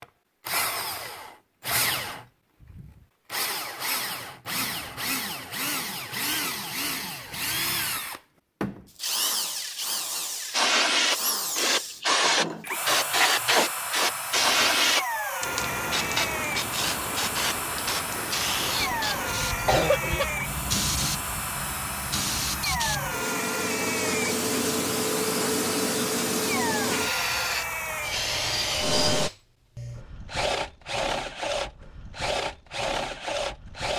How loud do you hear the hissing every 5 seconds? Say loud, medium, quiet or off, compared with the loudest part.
off, off, loud, medium, medium, medium, off.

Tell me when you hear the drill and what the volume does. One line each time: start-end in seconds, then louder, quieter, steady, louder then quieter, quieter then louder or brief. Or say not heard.
0.0-33.9 steady.